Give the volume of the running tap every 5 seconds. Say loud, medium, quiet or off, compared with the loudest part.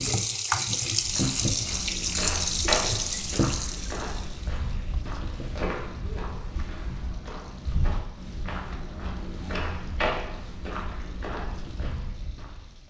loud, quiet, quiet.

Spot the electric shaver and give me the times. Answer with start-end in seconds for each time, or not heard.
not heard.